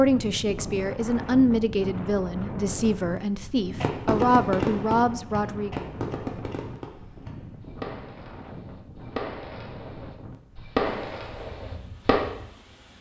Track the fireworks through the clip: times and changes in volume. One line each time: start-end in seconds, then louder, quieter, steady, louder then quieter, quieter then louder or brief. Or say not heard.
3.8-12.2 quieter then louder.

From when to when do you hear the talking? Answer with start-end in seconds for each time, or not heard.
0.0-5.8.